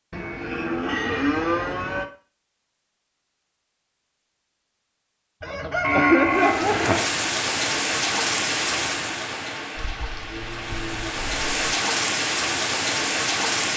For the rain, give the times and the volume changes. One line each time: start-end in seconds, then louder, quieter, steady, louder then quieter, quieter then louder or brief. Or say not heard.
6.2-13.7 quieter then louder.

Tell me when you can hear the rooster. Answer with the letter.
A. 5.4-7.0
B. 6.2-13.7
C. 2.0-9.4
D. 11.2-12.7
A.